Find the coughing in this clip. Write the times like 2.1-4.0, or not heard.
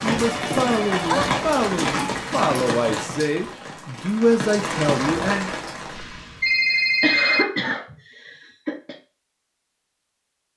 6.7-8.9.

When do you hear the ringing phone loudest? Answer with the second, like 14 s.
7 s.